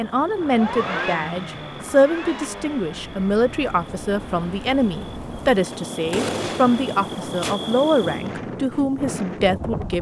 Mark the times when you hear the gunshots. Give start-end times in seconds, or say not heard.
5.7-7.5.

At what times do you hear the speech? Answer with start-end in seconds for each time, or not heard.
0.0-9.9.